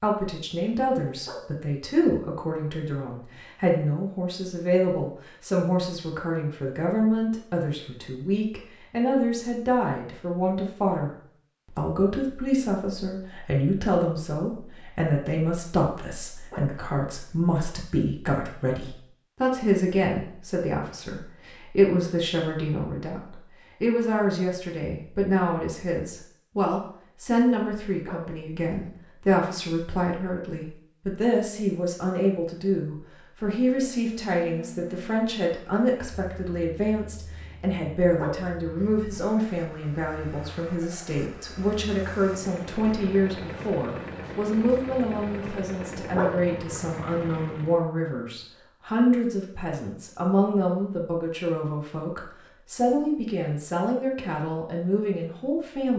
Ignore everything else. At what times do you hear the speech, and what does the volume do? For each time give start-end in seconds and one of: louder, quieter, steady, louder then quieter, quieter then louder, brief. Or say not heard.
0.0-55.9 steady.